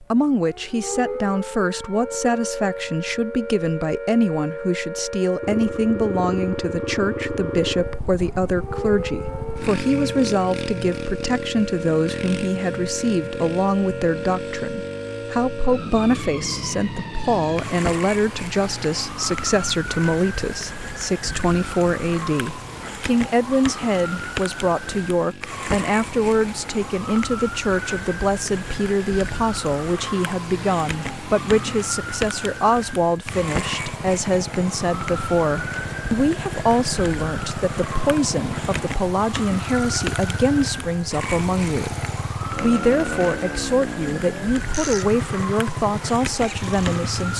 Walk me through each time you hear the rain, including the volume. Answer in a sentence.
The rain can't be heard in this clip.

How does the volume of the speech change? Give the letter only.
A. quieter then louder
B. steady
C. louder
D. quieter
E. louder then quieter
B.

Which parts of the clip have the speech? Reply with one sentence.
You can hear the speech from 0.0 to 47.3 s.